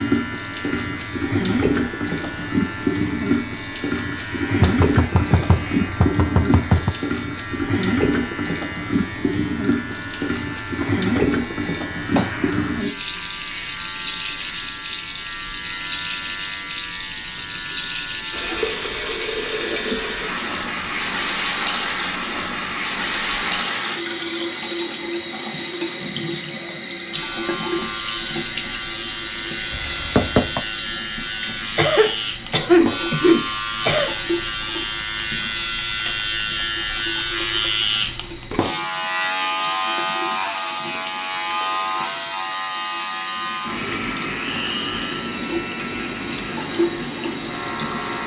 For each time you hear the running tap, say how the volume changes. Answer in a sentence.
The running tap can be heard from 0.0 to 48.2 s, getting quieter.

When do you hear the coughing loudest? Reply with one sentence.
The volume of the coughing peaks at 33 seconds.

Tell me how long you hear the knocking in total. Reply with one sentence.
You can hear the knocking for 3 seconds altogether.